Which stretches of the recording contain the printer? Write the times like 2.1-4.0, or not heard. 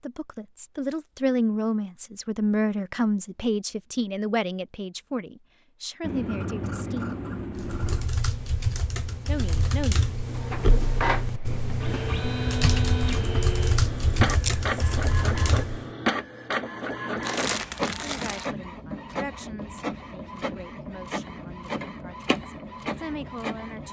10.2-23.8.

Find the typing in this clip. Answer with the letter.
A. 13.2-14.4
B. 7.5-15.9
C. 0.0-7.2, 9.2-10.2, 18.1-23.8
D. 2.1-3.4
B.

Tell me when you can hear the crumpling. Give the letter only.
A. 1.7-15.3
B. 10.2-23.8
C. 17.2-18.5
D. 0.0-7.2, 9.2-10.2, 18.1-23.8
C.